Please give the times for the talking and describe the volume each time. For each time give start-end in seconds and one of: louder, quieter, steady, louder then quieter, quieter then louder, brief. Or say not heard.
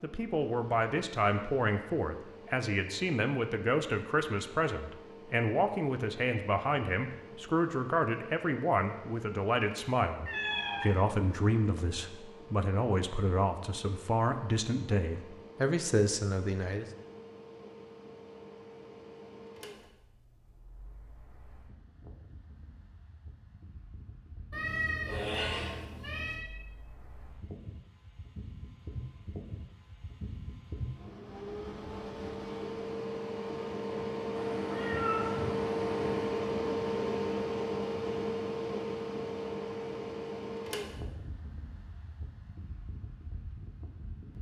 0.0-16.9 steady.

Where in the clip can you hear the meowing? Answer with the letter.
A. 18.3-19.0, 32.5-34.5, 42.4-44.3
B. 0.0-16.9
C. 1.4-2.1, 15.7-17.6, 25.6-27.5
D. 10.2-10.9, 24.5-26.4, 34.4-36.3
D.